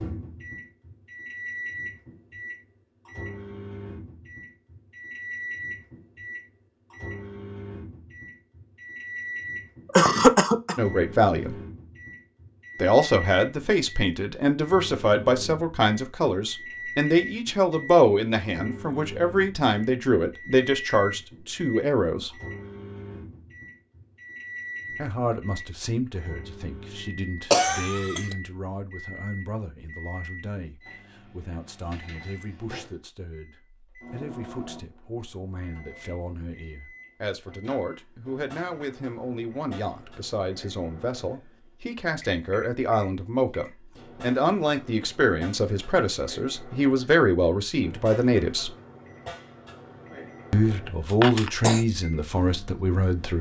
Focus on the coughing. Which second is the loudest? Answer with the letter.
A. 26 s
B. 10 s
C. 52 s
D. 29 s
B.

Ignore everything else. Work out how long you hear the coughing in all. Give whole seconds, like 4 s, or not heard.
2 s.